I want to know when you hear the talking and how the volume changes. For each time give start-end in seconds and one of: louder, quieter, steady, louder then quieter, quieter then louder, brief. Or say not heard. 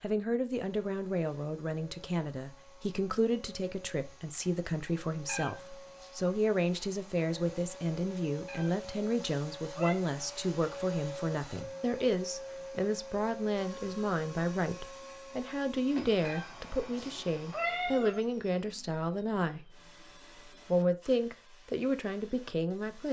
0.0-19.8 steady
20.6-23.0 brief.